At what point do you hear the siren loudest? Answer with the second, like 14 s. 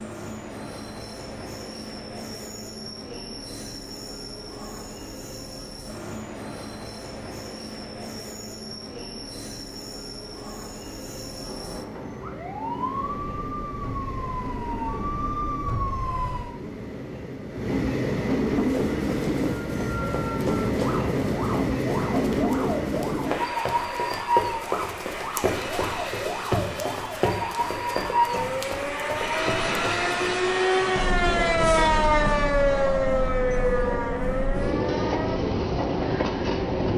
32 s.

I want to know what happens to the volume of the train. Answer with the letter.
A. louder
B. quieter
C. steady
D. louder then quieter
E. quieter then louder
A.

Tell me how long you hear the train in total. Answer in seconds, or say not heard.
37 s.